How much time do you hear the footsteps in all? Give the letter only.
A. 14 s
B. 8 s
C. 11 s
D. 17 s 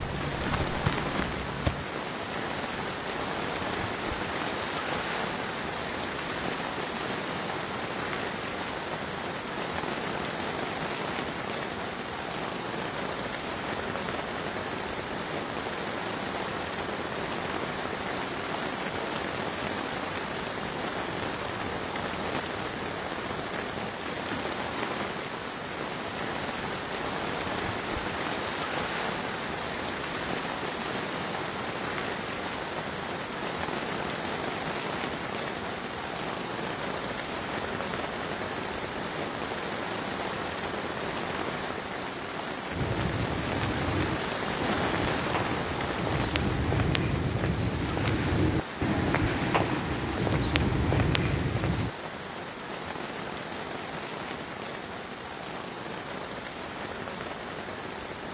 C.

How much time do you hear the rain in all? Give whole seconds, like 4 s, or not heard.
58 s.